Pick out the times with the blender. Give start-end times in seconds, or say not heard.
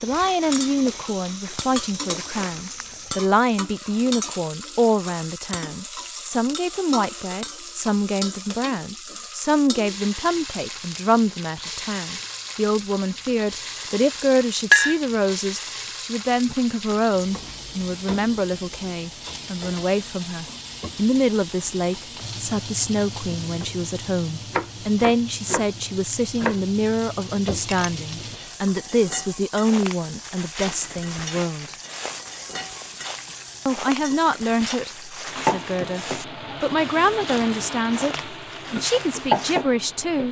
not heard.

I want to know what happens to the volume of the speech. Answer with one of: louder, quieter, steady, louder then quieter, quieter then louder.
steady.